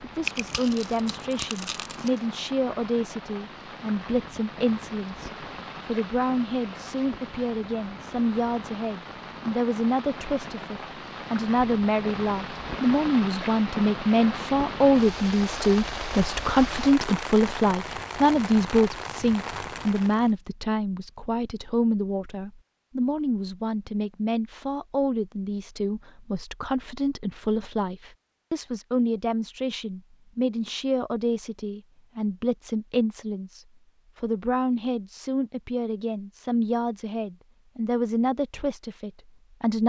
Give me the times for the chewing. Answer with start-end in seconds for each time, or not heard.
0.2-2.2.